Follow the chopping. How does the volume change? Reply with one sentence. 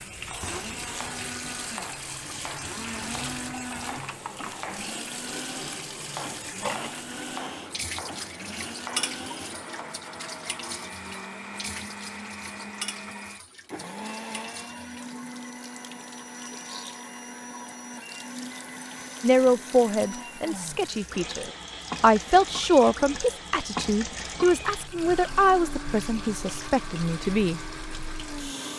The loudness of the chopping stays about the same.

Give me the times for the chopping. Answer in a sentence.
The chopping can be heard from 0.1 to 10.0 s.